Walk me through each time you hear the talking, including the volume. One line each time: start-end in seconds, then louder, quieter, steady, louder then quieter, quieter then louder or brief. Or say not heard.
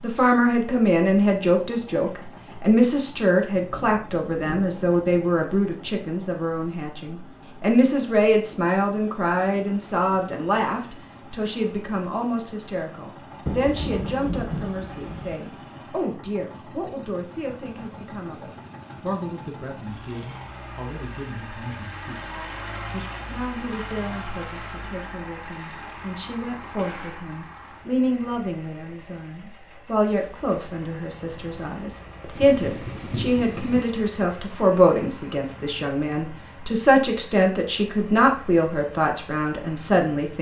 0.0-22.2 quieter
22.9-40.3 louder.